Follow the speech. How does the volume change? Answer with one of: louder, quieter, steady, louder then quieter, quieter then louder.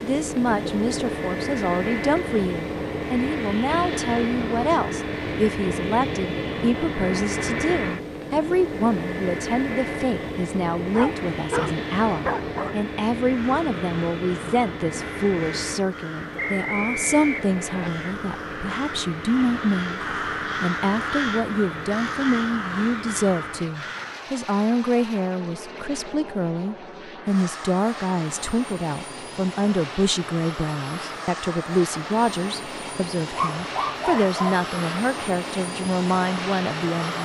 steady.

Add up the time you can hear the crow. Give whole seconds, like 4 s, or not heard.
11 s.